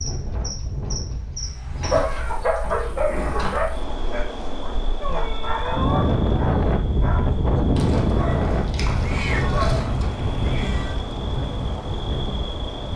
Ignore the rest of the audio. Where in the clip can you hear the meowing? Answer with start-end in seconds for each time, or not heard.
1.4-2.5, 5.0-6.2, 8.9-10.9.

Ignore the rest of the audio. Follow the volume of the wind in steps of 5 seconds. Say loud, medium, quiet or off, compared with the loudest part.
quiet, loud, medium.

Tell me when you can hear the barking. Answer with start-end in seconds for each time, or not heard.
1.8-10.1.